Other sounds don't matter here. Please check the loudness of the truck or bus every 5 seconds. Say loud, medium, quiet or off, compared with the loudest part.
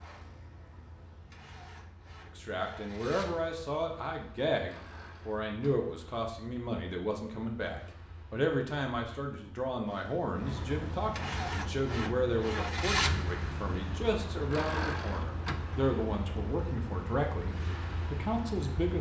quiet, quiet, loud, medium.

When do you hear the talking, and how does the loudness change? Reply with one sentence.
You can hear the talking from 2.4 to 18.9 s, at a steady volume.